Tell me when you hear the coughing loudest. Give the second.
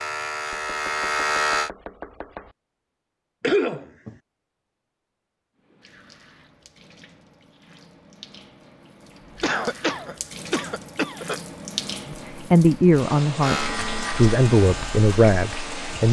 4 s.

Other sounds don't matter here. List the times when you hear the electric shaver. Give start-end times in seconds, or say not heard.
0.0-1.7, 13.4-16.0.